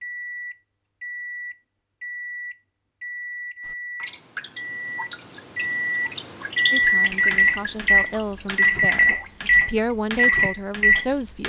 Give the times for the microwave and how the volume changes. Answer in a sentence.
You can hear the microwave from 0.0 to 11.4 s, getting louder.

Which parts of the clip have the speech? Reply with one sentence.
The speech can be heard from 6.7 to 11.4 s.